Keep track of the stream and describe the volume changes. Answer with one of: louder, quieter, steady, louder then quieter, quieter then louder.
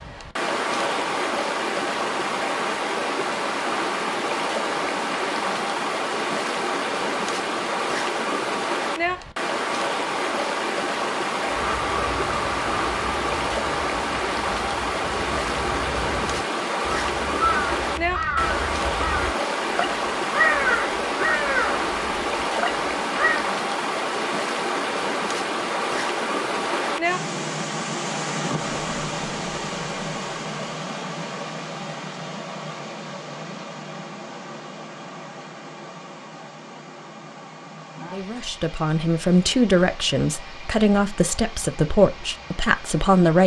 quieter.